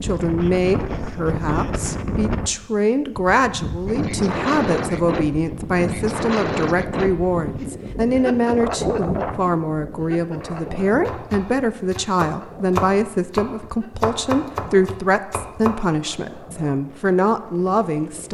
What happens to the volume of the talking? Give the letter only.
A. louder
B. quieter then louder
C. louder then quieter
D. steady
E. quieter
D.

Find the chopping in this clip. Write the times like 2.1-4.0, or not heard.
10.4-15.8.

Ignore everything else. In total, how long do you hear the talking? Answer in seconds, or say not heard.
18 s.